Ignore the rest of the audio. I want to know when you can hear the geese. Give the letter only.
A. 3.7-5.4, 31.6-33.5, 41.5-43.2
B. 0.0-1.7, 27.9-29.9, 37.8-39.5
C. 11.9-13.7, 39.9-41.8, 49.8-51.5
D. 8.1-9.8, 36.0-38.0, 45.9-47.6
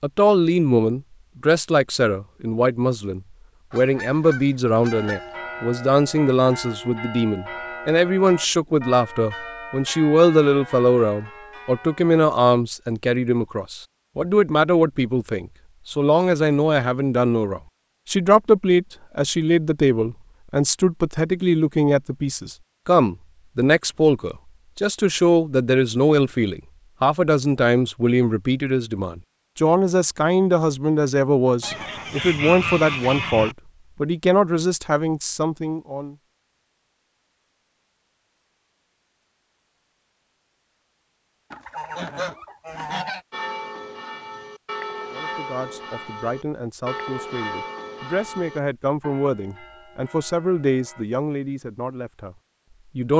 A.